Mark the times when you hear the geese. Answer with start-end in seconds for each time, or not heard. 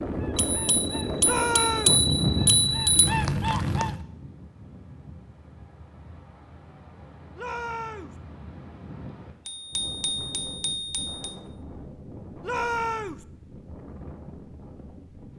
0.0-4.0.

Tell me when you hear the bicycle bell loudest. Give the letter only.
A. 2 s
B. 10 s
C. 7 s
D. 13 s
A.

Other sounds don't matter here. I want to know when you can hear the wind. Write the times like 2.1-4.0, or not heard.
0.0-15.3.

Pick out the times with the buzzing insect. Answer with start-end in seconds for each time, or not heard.
not heard.